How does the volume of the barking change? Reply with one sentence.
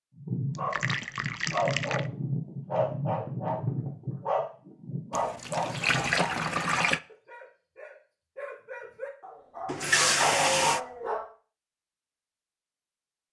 The loudness of the barking goes down, then up.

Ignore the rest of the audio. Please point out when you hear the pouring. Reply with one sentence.
You can hear the pouring from 0.6 to 2.1 s, from 5.1 to 7.0 s and from 9.7 to 10.8 s.